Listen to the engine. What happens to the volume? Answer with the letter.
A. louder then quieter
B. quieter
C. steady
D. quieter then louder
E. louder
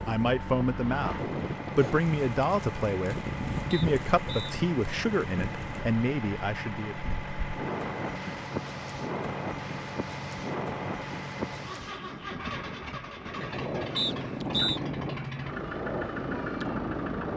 C.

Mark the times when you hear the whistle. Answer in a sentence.
The whistle can be heard from 3.7 to 4.5 s and from 13.9 to 14.8 s.